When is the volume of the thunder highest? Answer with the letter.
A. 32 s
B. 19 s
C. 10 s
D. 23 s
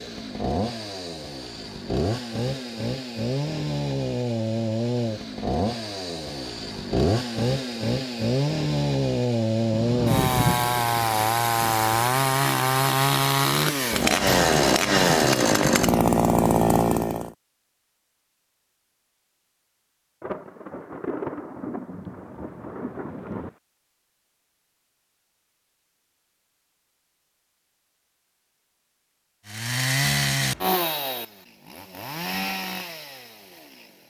C.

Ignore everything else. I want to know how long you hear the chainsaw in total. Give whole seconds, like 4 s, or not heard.
22 s.